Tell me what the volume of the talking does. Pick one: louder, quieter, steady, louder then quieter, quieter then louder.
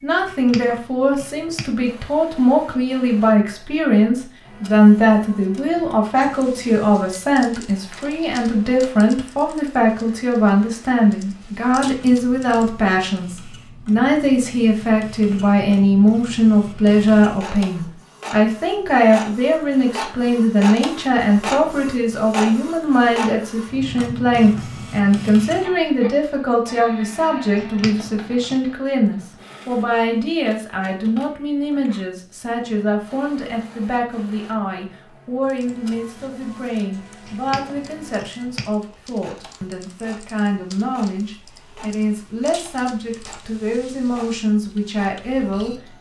quieter.